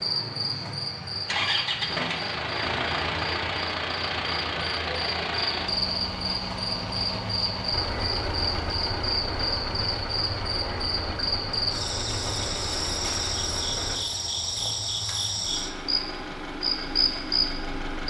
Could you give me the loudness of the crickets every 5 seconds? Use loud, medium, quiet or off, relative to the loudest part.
medium, loud, loud, loud.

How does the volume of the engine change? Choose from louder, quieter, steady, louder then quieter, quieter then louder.
quieter.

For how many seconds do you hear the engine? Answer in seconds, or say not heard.
18 s.